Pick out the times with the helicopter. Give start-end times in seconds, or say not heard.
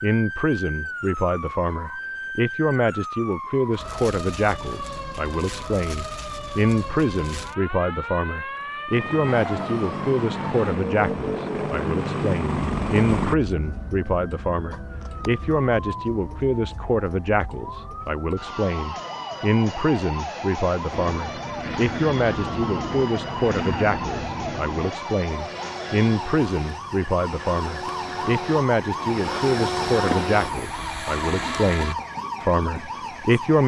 8.9-13.3, 20.9-31.9.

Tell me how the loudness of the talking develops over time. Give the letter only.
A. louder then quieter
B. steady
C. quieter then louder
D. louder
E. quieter
B.